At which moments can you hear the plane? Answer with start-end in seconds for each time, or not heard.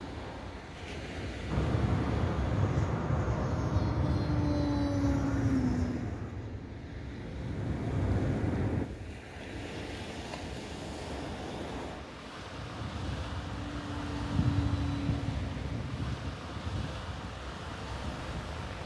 1.4-8.8, 12.6-18.8.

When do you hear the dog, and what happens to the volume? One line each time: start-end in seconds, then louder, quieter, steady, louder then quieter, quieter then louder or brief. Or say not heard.
not heard.